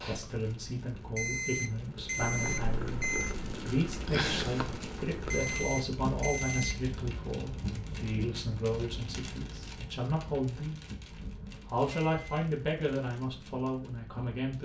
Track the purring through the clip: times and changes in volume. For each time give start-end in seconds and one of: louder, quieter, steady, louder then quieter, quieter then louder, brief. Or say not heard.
0.0-5.7 louder.